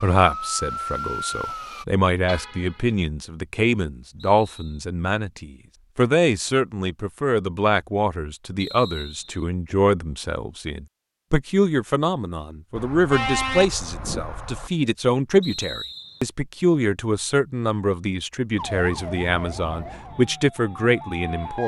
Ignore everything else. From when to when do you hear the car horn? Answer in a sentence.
The car horn can be heard from 2.2 to 3.0 s and from 12.8 to 14.7 s.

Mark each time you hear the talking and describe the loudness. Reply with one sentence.
The talking can be heard from 0.0 to 21.6 s, at a steady volume.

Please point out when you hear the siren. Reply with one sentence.
You can hear the siren from 0.0 to 1.9 s and from 18.6 to 21.6 s.